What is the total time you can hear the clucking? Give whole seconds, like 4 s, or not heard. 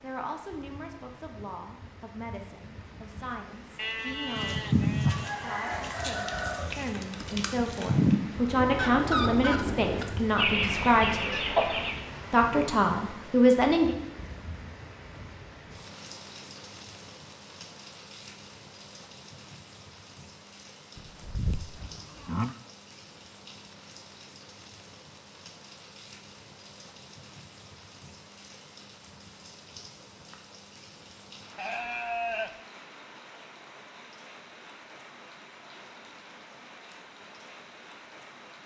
8 s.